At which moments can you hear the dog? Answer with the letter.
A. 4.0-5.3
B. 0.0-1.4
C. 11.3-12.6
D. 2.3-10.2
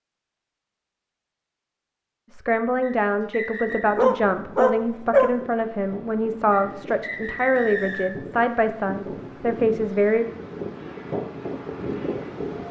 A.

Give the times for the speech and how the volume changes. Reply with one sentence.
The speech can be heard from 2.3 to 10.2 s, at a steady volume.